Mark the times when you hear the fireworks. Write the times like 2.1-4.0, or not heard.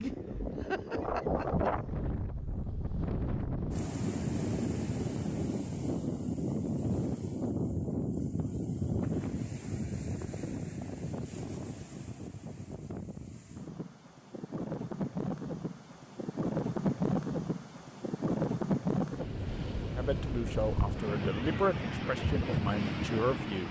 not heard.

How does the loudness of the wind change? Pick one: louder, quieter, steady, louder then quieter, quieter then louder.
quieter then louder.